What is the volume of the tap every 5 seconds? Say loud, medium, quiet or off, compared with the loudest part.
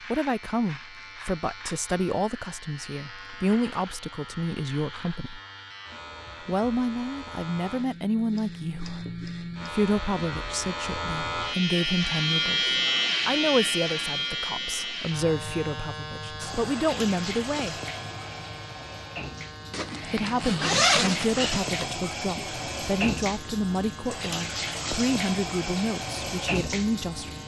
off, off, off, medium, loud, loud.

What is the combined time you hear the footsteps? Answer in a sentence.
You can't hear the footsteps here.